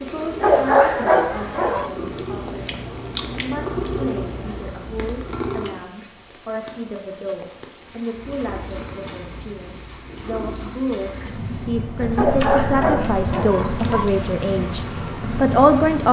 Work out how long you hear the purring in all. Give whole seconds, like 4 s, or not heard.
14 s.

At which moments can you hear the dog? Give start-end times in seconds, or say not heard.
0.4-1.9, 12.2-14.1.